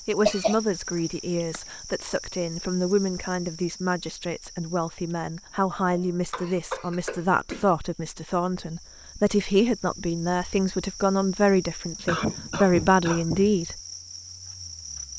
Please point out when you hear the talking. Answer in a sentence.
You can hear the talking from 0.1 to 13.8 s.